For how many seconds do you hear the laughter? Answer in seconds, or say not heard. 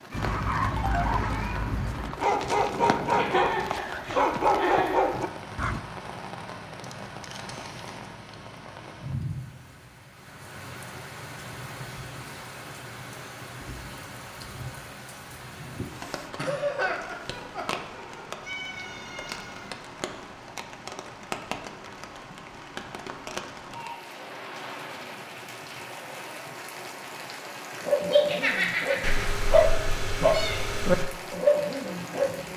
5 s.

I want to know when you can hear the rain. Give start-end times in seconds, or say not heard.
0.0-32.5.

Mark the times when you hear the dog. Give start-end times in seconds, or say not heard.
0.1-5.8, 27.8-32.5.